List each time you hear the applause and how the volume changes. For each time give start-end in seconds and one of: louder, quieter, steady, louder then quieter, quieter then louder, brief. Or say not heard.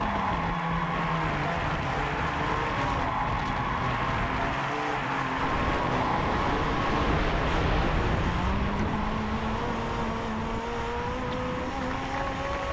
0.0-12.6 quieter.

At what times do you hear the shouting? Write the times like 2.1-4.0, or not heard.
not heard.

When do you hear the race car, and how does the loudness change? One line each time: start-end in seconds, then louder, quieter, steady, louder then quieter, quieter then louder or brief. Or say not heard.
0.0-12.6 steady.